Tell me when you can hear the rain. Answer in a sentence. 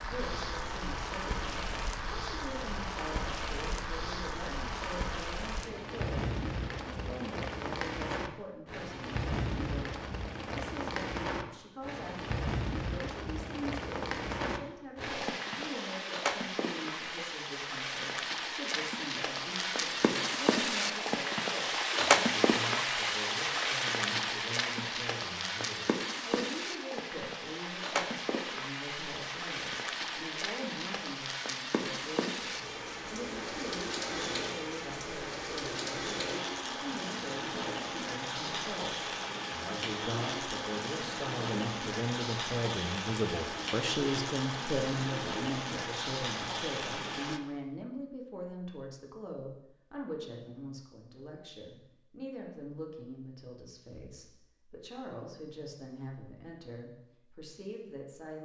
You can hear the rain from 0.0 to 47.4 s.